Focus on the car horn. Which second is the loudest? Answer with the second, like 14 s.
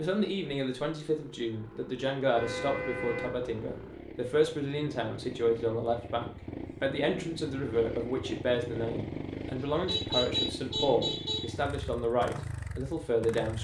10 s.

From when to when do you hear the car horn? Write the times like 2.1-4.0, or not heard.
2.4-4.0, 9.6-11.4.